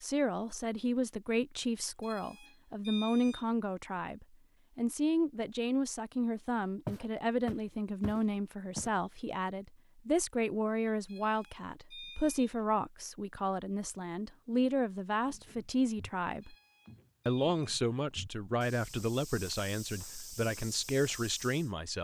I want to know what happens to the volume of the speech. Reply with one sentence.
The loudness of the speech stays about the same.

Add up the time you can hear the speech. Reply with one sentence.
You can hear the speech for 21 seconds altogether.